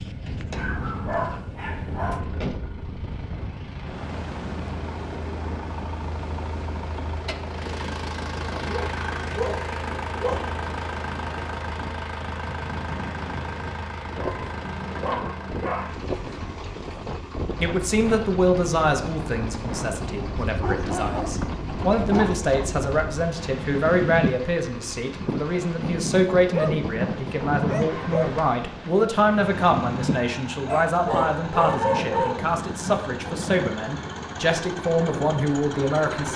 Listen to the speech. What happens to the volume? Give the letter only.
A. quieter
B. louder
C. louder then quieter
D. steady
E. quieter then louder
D.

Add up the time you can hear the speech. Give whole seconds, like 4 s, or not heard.
19 s.